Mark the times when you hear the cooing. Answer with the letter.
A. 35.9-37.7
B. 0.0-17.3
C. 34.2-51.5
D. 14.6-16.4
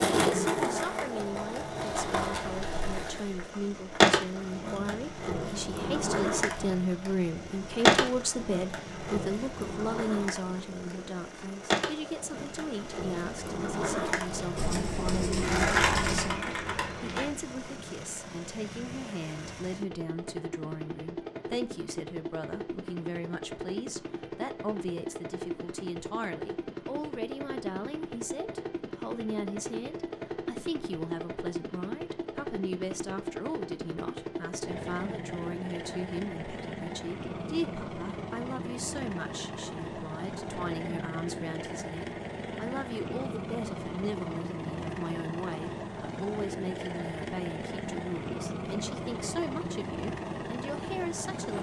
D.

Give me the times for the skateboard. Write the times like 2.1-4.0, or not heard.
0.0-17.3.